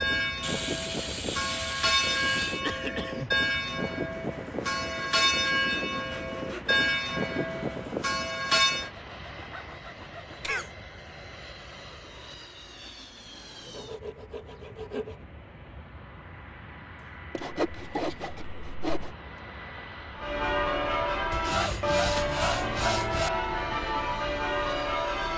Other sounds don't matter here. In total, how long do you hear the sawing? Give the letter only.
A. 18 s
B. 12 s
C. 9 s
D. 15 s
B.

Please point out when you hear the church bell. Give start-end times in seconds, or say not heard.
0.0-8.9, 20.1-25.3.